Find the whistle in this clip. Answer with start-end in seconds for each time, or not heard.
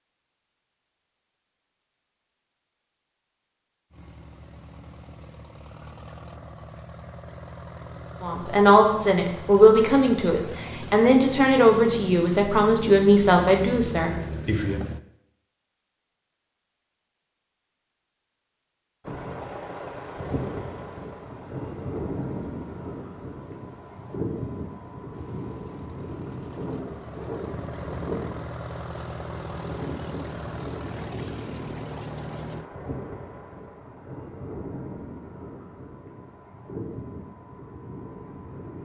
not heard.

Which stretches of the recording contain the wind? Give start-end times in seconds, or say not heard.
19.1-38.7.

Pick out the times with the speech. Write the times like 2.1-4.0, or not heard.
8.2-14.8.